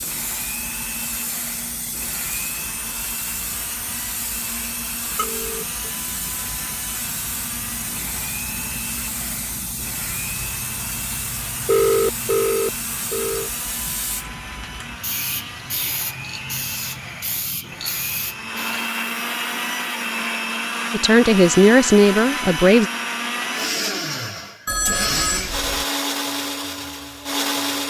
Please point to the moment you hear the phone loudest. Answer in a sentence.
The volume of the phone peaks at 12 seconds.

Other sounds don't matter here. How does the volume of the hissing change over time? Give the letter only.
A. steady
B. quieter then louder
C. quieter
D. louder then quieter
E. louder
A.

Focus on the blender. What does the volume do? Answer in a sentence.
The loudness of the blender goes up.